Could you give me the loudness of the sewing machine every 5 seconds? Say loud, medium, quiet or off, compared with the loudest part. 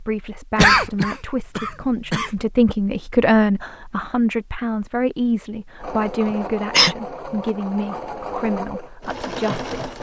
off, loud.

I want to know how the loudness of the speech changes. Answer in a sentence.
The loudness of the speech goes up, then down.